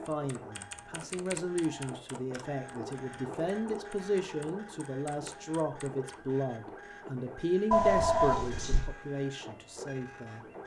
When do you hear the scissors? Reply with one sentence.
The scissors can't be heard in this clip.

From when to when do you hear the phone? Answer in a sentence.
The phone can be heard from 1.0 to 1.9 s and from 7.7 to 8.9 s.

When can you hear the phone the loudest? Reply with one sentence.
The volume of the phone peaks at 8 seconds.